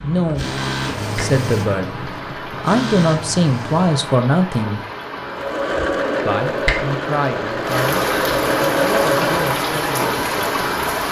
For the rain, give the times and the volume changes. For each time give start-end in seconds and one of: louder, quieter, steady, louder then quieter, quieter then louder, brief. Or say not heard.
0.0-11.0 louder.